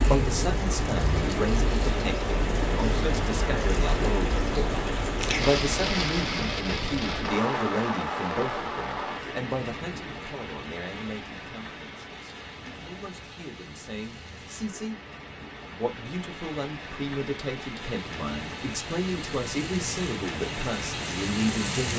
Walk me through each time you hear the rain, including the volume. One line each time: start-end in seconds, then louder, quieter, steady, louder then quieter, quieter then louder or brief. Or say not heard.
0.0-21.9 quieter then louder.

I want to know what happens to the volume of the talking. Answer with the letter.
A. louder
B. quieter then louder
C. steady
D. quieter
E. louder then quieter
B.